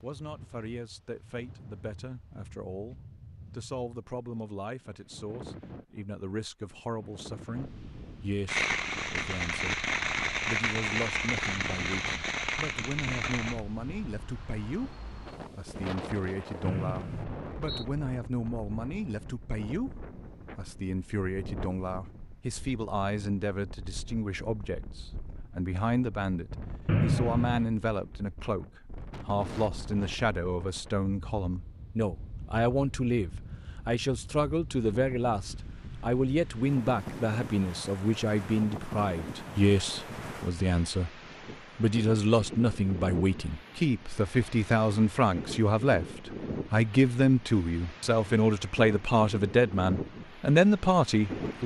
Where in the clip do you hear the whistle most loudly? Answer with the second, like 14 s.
27 s.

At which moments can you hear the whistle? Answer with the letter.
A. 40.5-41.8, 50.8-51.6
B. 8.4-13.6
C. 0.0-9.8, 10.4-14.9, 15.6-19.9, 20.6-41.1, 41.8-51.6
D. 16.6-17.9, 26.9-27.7
D.